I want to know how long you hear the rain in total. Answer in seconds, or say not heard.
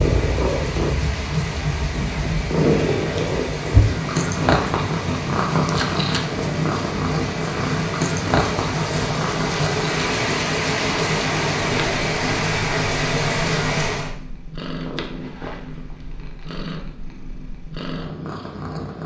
14 s.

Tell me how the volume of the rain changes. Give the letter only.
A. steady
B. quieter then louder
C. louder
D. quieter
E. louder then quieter
C.